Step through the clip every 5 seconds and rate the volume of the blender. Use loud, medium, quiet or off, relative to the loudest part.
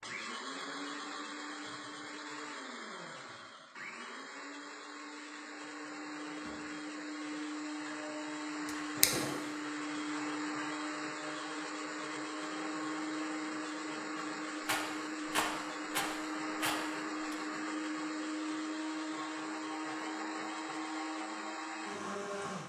medium, loud, loud, loud, loud.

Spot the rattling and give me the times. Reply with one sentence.
You can hear the rattling from 14.7 to 17.4 s.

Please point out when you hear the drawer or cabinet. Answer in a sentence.
The drawer or cabinet can be heard from 8.7 to 9.4 s.